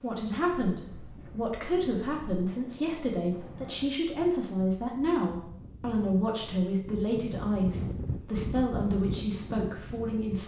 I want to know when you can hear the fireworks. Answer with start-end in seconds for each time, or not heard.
not heard.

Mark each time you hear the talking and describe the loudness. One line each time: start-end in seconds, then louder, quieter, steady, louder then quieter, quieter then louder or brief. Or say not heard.
0.0-10.4 steady.